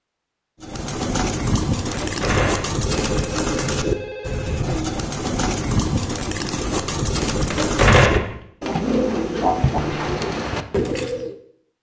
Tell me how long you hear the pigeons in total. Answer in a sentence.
You can hear the pigeons for 11 seconds altogether.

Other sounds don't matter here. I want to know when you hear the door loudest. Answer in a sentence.
The volume of the door peaks at 8 seconds.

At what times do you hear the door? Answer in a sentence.
You can hear the door from 1.9 to 2.8 s and from 7.5 to 8.3 s.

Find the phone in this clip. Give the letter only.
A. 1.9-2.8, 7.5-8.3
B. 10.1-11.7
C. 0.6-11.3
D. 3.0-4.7
D.